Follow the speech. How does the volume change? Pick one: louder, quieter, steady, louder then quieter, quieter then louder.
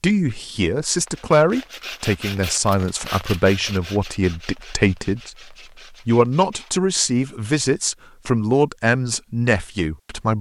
steady.